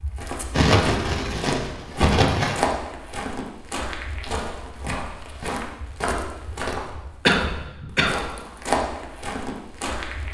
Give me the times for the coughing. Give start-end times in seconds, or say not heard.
0.5-2.6, 7.2-8.2.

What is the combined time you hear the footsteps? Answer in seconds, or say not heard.
10 s.